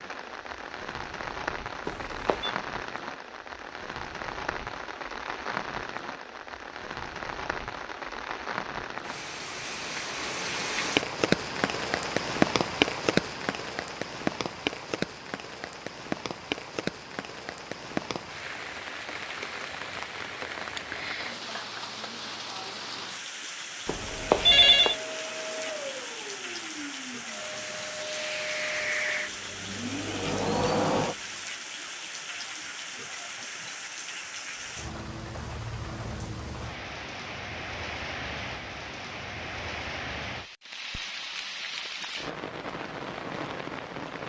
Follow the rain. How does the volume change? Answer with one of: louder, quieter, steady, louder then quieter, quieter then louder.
louder then quieter.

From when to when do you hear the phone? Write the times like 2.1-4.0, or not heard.
1.9-2.5, 23.9-24.9.